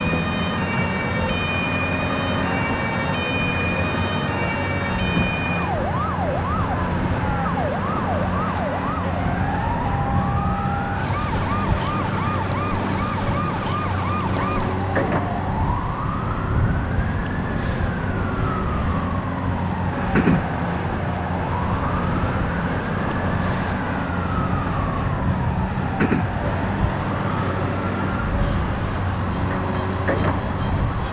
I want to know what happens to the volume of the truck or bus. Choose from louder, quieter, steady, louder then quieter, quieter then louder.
steady.